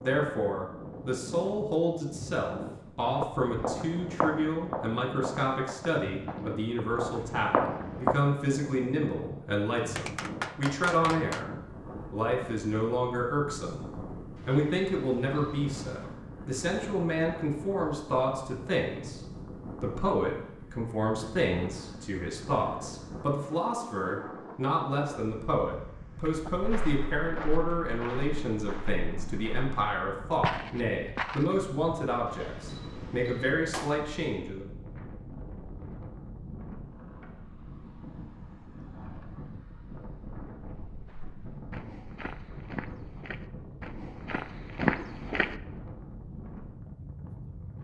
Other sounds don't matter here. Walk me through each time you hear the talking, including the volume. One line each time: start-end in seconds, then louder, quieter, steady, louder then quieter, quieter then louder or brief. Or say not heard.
0.0-11.4 steady
12.1-13.8 brief
14.4-19.2 quieter then louder
19.8-34.6 steady.